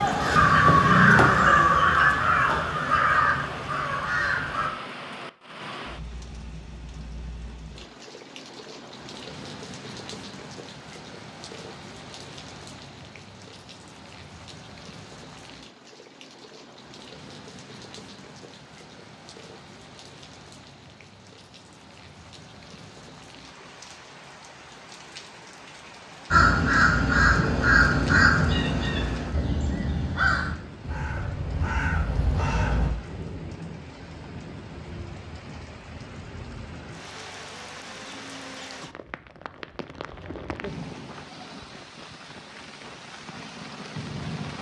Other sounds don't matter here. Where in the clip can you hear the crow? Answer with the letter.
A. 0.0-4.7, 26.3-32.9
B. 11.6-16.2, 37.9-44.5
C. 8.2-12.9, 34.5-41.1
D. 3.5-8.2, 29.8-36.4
A.